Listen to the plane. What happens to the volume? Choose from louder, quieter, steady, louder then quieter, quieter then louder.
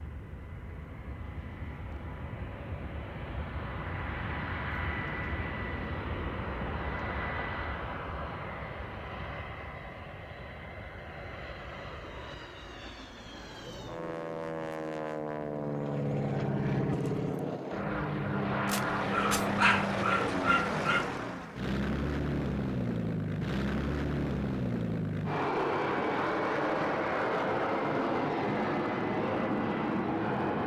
louder.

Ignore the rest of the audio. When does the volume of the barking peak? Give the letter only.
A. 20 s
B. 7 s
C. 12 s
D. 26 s
A.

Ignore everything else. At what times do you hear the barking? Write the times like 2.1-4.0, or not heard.
18.6-21.1.